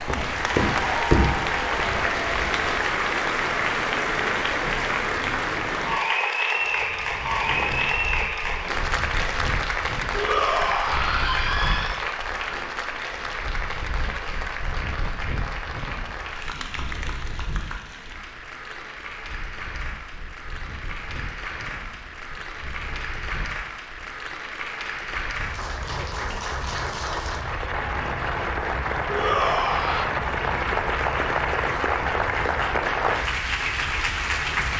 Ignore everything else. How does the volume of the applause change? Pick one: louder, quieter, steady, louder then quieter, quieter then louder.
quieter then louder.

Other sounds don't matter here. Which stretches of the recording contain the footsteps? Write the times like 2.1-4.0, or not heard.
0.0-2.6.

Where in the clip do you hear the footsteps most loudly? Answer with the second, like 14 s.
1 s.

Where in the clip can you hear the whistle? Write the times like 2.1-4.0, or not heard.
not heard.